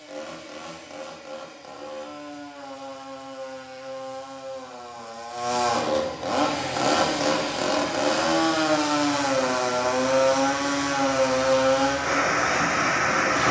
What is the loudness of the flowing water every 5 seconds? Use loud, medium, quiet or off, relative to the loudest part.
off, medium, loud.